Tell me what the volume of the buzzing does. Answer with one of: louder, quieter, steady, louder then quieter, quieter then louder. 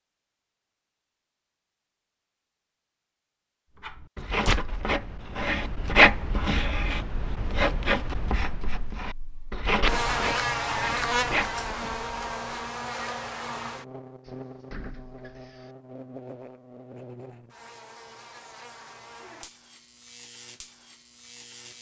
quieter.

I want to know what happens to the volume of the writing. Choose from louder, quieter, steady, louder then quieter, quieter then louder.
louder then quieter.